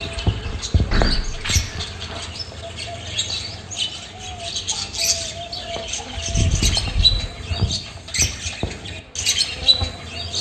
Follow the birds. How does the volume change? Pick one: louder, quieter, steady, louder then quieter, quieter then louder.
louder.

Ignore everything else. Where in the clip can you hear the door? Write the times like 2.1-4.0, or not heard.
0.7-1.9, 6.3-7.3.